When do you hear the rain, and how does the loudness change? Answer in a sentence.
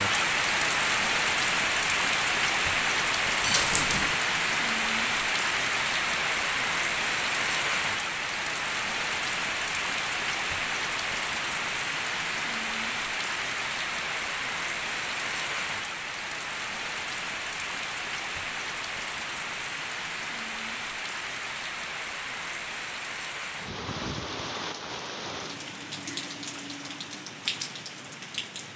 You can hear the rain from 0.0 to 28.7 s, getting quieter.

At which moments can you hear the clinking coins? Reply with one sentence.
The clinking coins can be heard from 3.4 to 4.2 s.